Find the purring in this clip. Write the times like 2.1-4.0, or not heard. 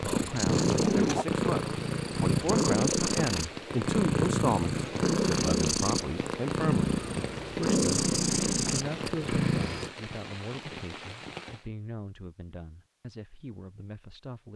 0.0-9.9.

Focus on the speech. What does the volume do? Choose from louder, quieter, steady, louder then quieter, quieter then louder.
quieter.